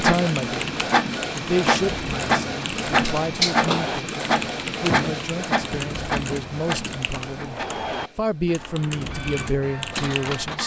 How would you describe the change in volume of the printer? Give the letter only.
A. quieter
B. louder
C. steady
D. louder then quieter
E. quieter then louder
A.